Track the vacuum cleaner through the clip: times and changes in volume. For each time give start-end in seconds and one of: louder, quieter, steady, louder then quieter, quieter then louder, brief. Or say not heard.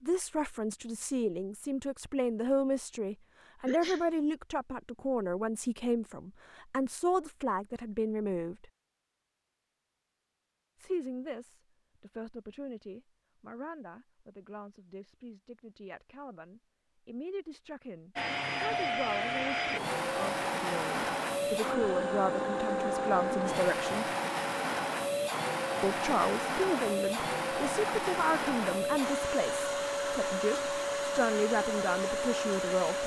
18.1-33.0 steady.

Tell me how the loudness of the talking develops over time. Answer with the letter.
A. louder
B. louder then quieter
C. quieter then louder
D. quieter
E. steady
C.